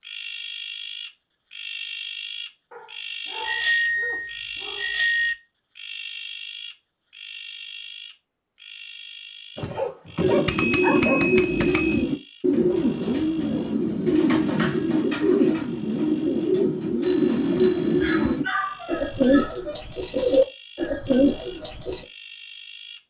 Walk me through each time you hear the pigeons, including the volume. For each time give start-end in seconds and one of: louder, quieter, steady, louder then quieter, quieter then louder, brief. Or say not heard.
10.2-22.1 steady.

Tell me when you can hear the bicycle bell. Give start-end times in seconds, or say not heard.
3.4-5.3, 10.4-12.1, 17.0-18.4.